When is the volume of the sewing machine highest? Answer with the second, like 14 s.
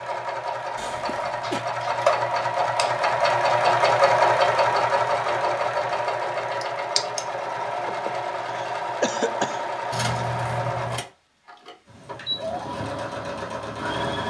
4 s.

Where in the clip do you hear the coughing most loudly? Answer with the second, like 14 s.
9 s.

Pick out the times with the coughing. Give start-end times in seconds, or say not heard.
0.8-1.6, 7.8-9.7.